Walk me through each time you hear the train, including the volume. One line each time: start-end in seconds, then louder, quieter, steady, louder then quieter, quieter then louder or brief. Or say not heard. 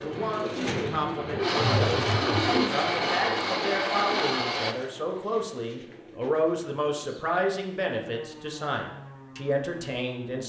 0.0-4.8 louder.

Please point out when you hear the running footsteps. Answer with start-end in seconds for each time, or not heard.
not heard.